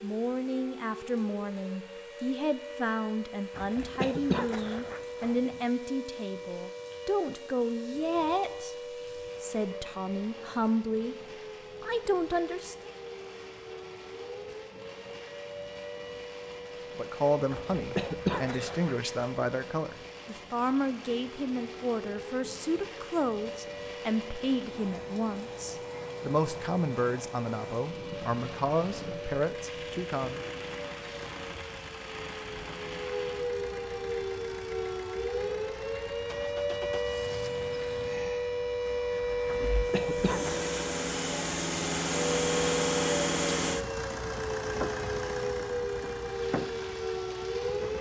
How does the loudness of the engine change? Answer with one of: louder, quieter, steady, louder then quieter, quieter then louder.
louder then quieter.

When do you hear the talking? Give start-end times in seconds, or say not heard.
0.0-11.2, 11.8-12.9, 16.9-30.4.